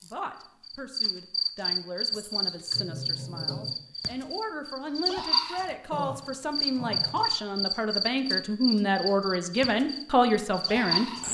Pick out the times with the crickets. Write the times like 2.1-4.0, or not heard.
0.0-11.2.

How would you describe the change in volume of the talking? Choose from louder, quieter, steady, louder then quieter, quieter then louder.
louder.